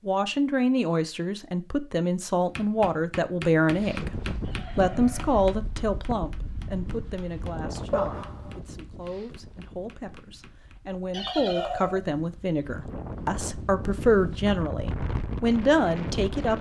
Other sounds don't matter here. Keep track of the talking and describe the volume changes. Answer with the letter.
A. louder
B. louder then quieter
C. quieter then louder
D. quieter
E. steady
C.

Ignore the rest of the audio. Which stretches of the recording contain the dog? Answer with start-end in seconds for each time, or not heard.
7.9-8.6.